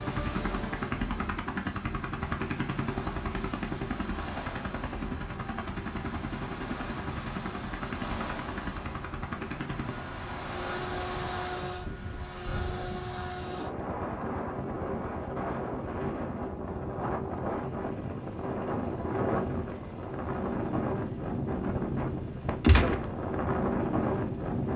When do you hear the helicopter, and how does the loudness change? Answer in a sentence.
You can hear the helicopter from 0.0 to 24.7 s, getting quieter.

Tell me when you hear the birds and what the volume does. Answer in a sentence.
The birds can't be heard in this clip.